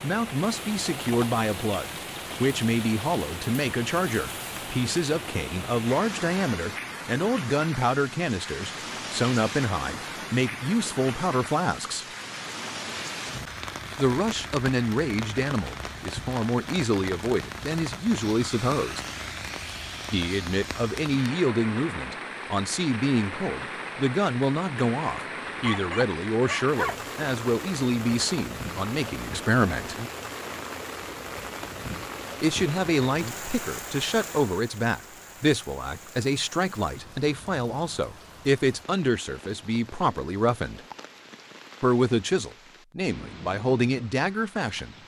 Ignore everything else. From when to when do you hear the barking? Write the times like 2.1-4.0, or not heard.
25.4-26.9.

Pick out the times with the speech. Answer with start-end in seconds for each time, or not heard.
0.0-12.1, 13.9-19.0, 20.1-29.9, 32.4-40.8, 41.8-45.0.